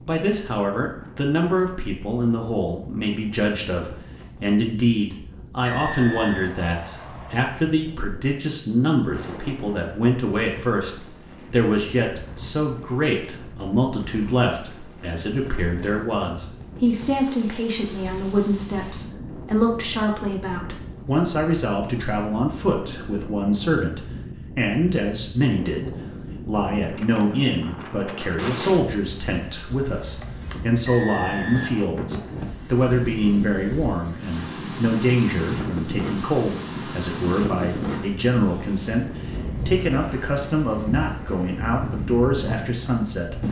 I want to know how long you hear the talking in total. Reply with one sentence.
The talking can be heard for 43 seconds in total.